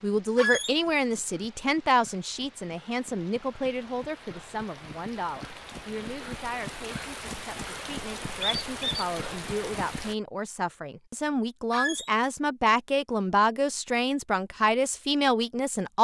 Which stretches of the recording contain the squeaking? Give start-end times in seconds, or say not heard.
0.3-0.8, 8.4-9.1, 11.7-12.1.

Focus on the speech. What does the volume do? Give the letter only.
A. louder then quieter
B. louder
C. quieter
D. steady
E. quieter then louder
E.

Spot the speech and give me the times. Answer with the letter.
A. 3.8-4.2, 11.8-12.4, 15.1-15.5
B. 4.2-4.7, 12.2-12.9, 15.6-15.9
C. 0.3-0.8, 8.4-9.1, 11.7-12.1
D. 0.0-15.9
D.